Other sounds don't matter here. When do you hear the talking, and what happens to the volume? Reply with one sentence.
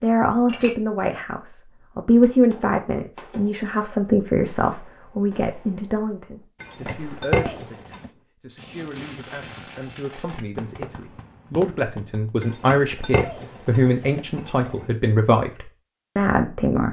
You can hear the talking from 0.0 to 16.8 s, getting quieter then louder.